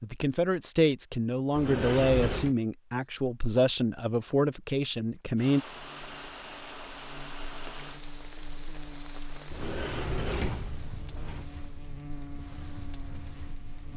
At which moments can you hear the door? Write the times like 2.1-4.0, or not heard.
1.6-2.5, 9.5-11.4.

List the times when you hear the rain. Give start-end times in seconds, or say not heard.
5.3-13.9.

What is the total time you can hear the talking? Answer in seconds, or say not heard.
6 s.